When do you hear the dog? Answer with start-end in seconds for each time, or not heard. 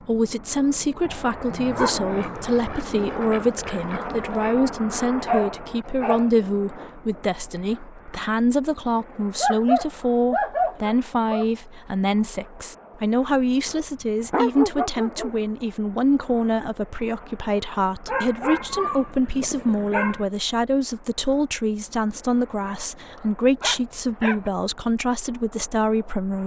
1.1-2.6, 5.2-6.3, 9.4-11.4, 13.7-15.3, 18.1-20.2, 22.6-24.5.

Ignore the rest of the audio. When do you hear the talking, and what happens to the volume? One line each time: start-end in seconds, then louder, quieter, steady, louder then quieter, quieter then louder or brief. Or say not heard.
0.1-26.4 steady.